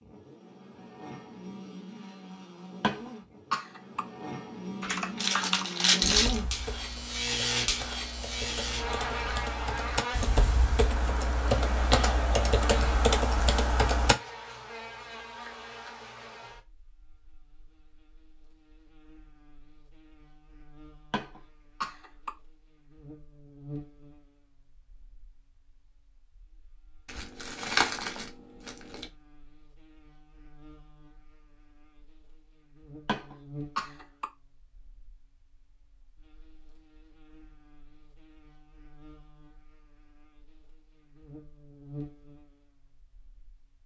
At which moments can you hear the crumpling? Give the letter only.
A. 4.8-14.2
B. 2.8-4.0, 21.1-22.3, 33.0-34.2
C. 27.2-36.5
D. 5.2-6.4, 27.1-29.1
D.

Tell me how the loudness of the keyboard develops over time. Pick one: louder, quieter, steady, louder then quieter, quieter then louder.
quieter then louder.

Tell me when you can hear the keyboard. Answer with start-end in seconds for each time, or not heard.
4.8-14.2.